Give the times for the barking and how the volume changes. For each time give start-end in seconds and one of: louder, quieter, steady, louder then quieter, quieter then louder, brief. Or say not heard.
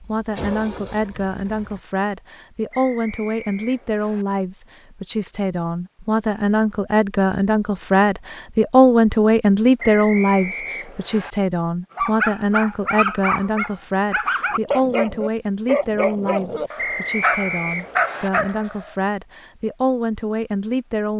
11.9-18.9 steady.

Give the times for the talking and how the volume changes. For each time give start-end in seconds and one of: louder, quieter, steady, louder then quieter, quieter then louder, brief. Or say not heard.
0.0-21.1 louder then quieter.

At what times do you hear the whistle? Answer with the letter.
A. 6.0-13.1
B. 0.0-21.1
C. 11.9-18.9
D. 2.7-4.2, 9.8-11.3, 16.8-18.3
D.